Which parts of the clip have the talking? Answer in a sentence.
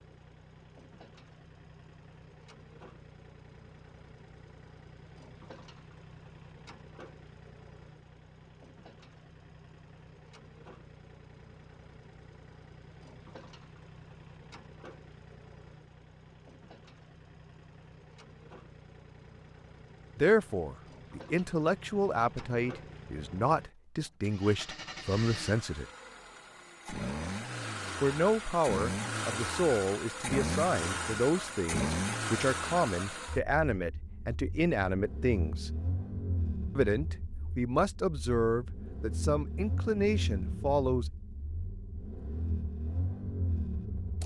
You can hear the talking from 20.1 to 25.9 s, from 28.0 to 35.7 s and from 36.8 to 41.1 s.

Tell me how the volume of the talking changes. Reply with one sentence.
The loudness of the talking stays about the same.